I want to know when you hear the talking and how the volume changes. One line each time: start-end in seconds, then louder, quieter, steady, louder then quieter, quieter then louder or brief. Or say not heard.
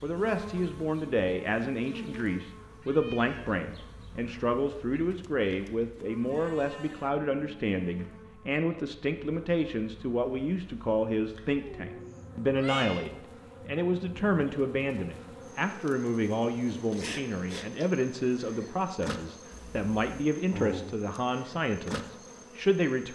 0.0-23.1 steady.